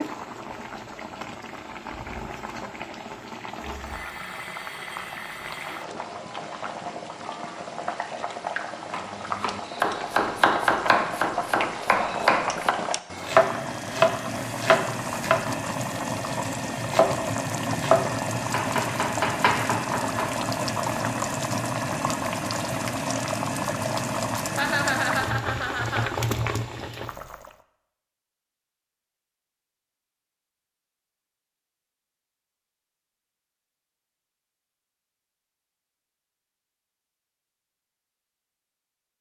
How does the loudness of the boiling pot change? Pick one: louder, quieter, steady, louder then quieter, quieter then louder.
louder.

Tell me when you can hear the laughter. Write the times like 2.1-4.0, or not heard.
24.6-26.1.